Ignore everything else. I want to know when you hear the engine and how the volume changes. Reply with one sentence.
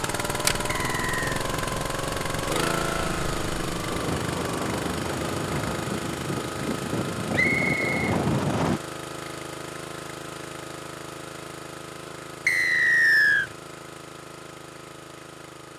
You can hear the engine from 0.0 to 15.7 s, getting quieter.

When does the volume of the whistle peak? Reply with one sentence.
The loudest moment of the whistle is at 13 seconds.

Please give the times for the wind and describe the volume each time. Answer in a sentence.
You can hear the wind from 0.1 to 8.8 s, getting louder.